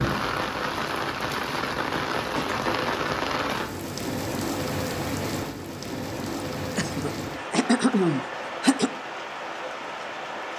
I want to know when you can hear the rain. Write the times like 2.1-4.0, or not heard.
0.0-10.5.